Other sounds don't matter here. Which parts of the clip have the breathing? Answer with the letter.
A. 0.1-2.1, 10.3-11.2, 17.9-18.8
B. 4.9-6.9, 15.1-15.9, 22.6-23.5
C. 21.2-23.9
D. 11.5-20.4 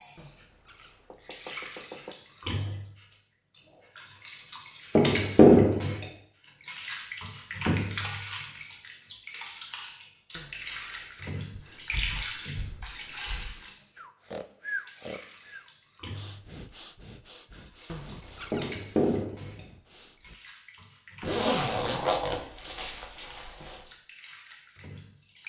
D.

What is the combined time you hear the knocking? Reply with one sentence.
The knocking can be heard for 4 seconds in total.